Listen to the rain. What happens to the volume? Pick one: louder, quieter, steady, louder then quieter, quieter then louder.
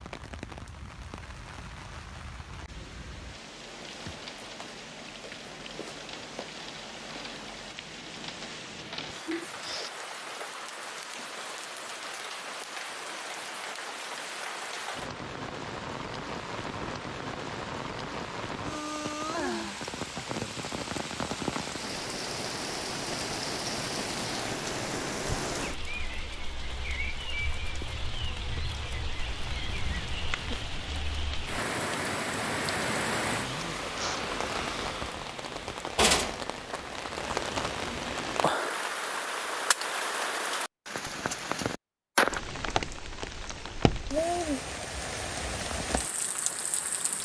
louder.